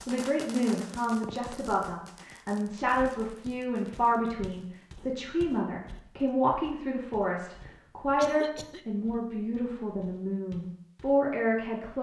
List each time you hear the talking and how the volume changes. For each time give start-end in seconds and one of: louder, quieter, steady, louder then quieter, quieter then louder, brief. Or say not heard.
0.1-11.9 steady.